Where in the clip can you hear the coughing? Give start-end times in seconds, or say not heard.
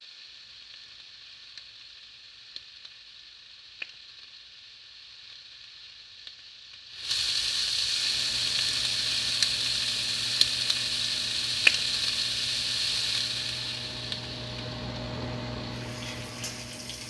not heard.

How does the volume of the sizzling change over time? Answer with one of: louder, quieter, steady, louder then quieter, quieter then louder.
louder then quieter.